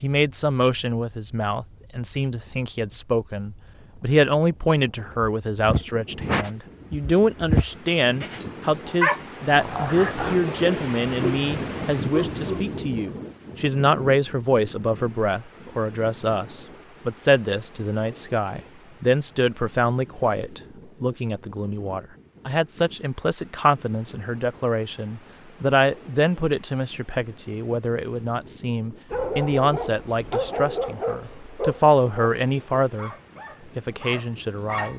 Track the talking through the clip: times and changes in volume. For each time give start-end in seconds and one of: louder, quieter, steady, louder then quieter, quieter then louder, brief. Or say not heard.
0.0-33.1 steady
33.8-34.9 brief.